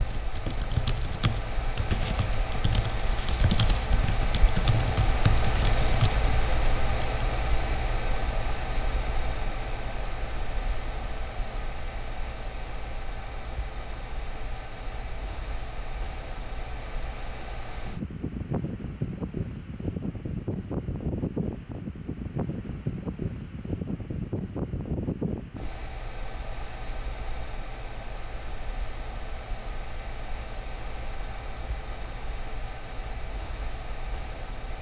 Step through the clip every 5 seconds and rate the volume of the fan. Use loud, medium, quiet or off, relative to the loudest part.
loud, loud, medium, loud, loud, medium, medium.